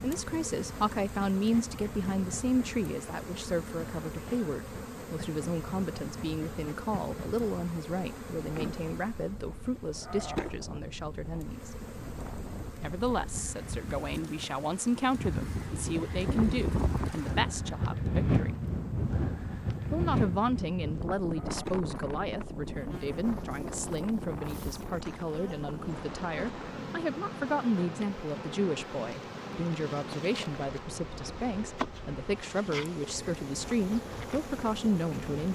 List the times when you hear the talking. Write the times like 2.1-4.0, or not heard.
0.0-11.7, 12.8-18.5, 19.9-35.5.